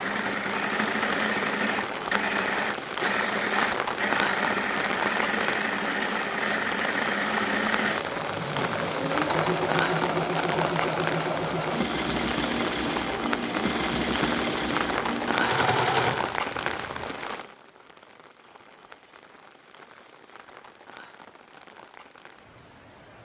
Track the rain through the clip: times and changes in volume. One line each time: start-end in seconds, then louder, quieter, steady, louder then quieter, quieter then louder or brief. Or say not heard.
0.0-23.2 quieter.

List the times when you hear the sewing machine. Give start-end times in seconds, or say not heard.
0.0-17.1.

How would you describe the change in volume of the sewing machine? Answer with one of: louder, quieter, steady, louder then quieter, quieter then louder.
steady.